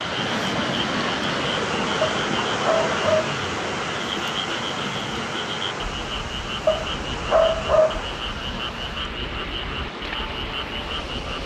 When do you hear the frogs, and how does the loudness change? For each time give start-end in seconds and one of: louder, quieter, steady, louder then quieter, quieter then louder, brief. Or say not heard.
0.0-11.4 steady.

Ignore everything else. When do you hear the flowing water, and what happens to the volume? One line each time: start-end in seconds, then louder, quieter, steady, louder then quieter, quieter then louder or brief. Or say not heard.
0.0-11.4 quieter.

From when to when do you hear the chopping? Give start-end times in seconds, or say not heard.
not heard.